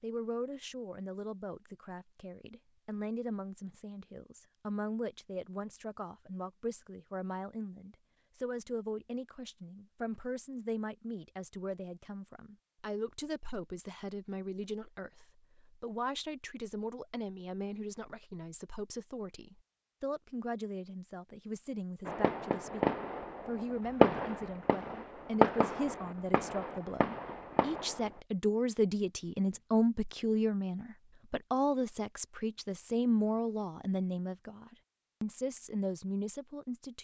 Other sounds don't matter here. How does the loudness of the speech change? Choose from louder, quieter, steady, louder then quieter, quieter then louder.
louder.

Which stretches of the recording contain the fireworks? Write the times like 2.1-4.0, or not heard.
22.1-28.1.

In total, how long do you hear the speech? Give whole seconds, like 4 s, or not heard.
37 s.